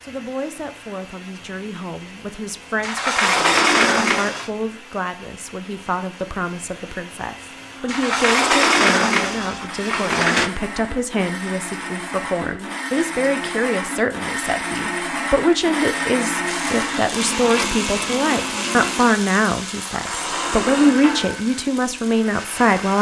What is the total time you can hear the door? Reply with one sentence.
The door can be heard for 6 seconds in total.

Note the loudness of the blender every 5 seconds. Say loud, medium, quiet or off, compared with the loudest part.
quiet, quiet, loud, loud, medium.